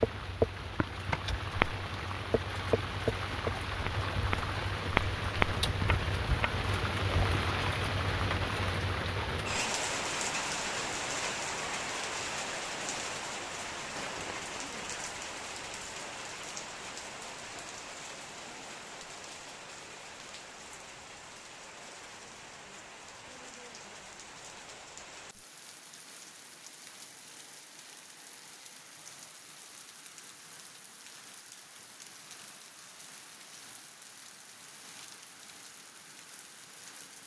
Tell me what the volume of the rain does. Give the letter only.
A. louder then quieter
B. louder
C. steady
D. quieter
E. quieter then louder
D.